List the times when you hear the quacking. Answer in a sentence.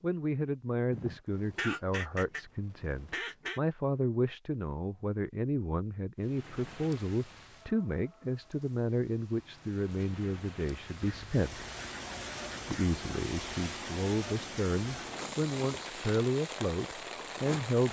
The quacking can be heard from 0.9 to 3.6 s and from 11.0 to 12.9 s.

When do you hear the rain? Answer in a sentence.
The rain can be heard from 6.2 to 17.8 s.